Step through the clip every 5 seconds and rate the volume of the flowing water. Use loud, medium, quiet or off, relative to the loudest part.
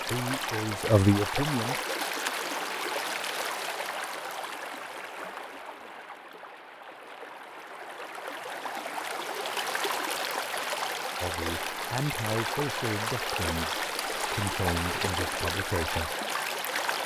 loud, medium, loud, loud.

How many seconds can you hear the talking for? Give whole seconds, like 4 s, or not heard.
7 s.